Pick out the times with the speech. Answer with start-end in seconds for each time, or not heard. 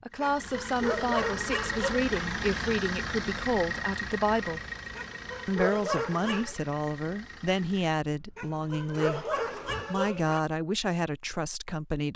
0.0-4.6, 5.5-12.1.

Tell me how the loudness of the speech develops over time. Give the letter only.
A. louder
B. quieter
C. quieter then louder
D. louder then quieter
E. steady
E.